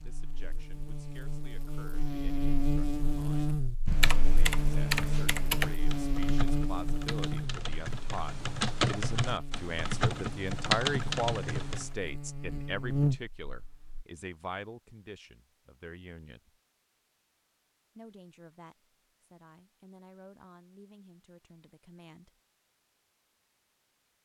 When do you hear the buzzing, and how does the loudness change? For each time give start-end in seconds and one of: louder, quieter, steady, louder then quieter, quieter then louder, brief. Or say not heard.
0.0-14.1 quieter then louder.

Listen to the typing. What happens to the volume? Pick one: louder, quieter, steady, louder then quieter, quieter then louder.
quieter then louder.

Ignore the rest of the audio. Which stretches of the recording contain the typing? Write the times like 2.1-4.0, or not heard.
3.9-11.8.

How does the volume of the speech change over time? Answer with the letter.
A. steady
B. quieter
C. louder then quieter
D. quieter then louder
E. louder
C.